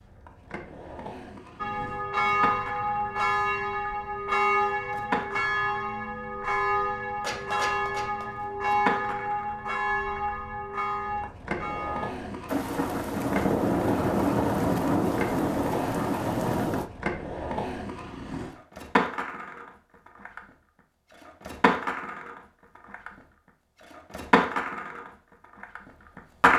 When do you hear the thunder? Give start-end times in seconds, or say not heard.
12.4-16.9.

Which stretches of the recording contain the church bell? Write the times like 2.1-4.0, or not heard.
1.6-12.2.